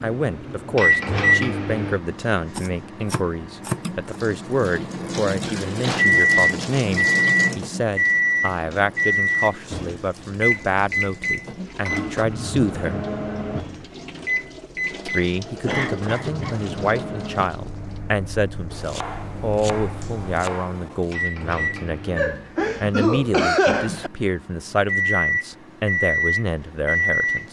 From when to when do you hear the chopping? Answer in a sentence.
You can hear the chopping from 2.5 to 4.0 s and from 18.7 to 21.1 s.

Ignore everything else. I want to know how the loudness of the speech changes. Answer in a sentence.
The loudness of the speech stays about the same.